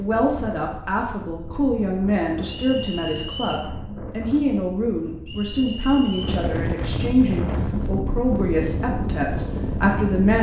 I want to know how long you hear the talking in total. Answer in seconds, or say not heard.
10 s.